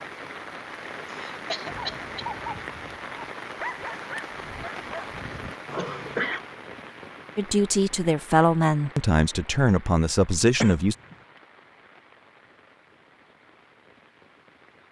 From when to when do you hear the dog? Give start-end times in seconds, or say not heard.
1.6-6.2.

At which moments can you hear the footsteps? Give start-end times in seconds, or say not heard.
not heard.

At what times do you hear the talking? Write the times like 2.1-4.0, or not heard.
7.3-10.9.